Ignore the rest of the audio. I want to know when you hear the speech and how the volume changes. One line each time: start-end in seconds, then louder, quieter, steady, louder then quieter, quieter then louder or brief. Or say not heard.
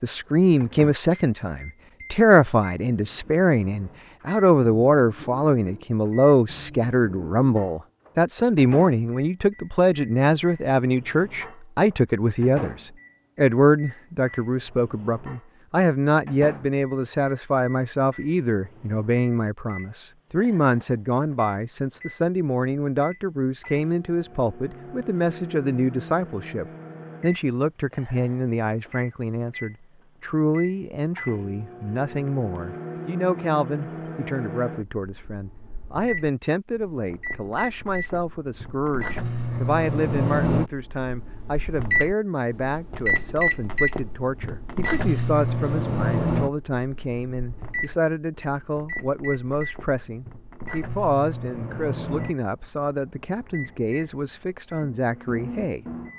0.0-55.9 quieter.